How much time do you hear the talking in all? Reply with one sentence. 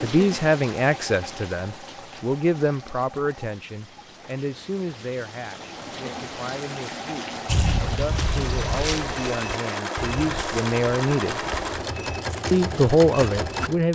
You can hear the talking for 13 seconds altogether.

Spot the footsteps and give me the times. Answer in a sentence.
The footsteps can be heard from 7.5 to 13.7 s.